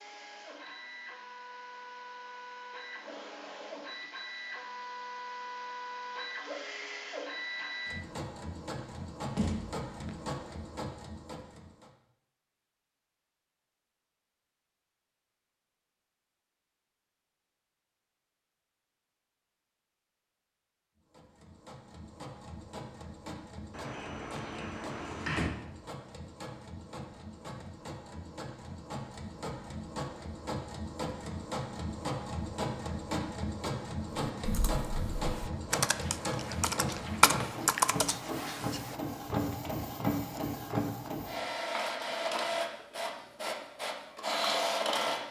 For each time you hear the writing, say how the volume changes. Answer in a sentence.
You can't hear the writing here.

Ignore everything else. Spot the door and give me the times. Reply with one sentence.
The door can be heard from 9.3 to 10.2 s and from 23.7 to 25.6 s.